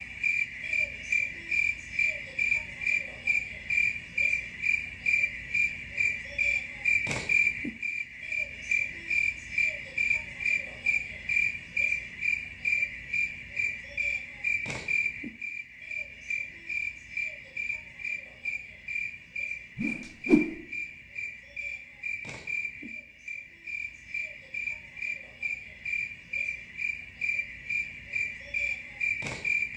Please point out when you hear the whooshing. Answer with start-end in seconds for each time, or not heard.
19.8-20.6.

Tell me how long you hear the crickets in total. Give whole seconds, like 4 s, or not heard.
30 s.